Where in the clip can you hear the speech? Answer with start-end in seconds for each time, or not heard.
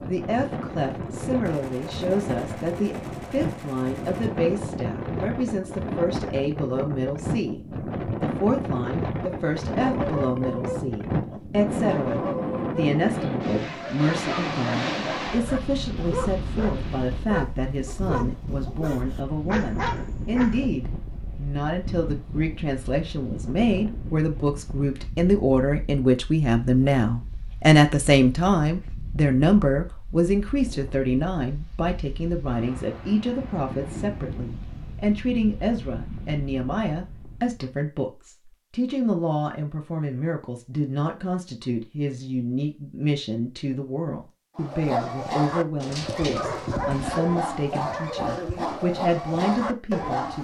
0.1-50.3.